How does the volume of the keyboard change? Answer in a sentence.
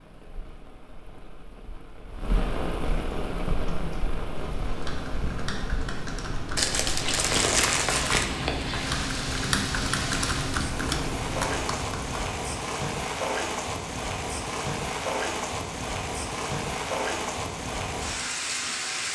The loudness of the keyboard goes up.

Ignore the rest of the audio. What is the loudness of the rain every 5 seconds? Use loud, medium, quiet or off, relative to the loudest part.
medium, loud, loud, loud.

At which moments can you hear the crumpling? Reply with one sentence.
You can hear the crumpling from 6.5 to 8.3 s.